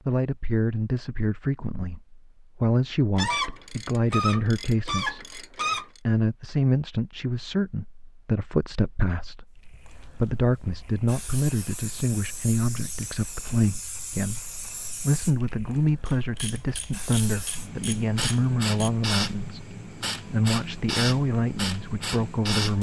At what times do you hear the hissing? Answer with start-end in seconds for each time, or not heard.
9.6-22.7.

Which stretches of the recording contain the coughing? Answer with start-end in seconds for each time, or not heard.
not heard.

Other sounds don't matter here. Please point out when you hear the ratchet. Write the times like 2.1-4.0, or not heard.
3.1-6.0, 16.1-18.9.